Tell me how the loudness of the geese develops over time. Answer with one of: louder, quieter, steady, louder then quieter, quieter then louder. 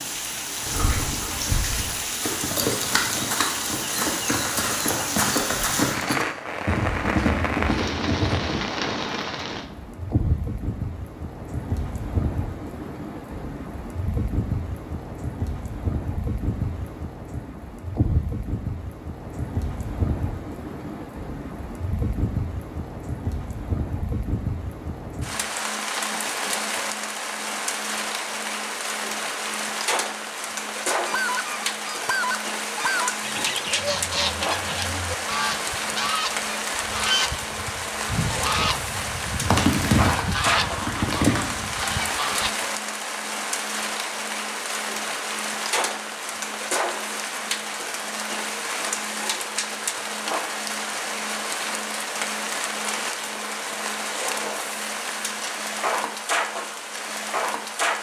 steady.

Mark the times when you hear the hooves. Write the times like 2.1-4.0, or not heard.
0.6-8.6, 39.5-41.5.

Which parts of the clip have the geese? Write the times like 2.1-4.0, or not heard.
31.0-42.5.